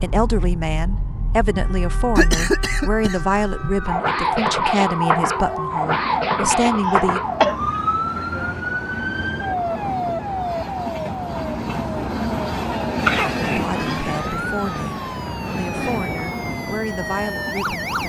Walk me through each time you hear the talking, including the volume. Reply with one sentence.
The talking can be heard from 0.0 to 7.2 s, at a steady volume; and from 13.4 to 18.0 s, at a steady volume.